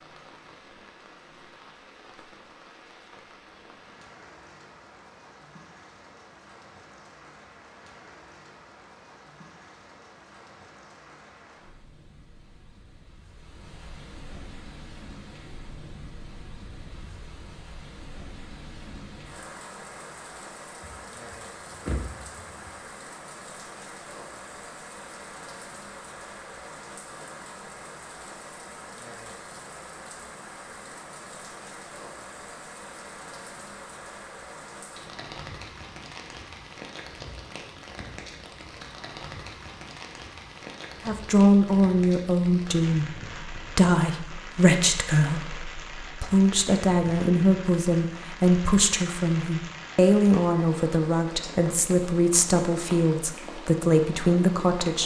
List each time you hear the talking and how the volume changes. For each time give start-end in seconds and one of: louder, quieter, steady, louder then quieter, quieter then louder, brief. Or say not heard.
41.0-55.0 steady.